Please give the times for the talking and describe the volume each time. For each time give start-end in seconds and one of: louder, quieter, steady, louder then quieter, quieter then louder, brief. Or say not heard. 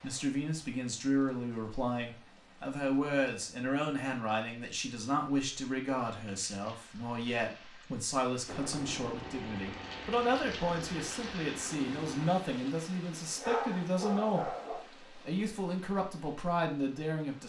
0.0-17.4 steady.